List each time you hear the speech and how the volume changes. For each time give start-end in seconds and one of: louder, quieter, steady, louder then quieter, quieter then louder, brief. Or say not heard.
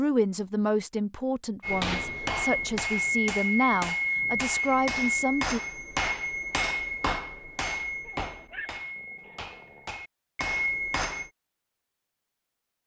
0.0-5.6 quieter then louder.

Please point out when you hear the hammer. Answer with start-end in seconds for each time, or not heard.
1.6-11.3.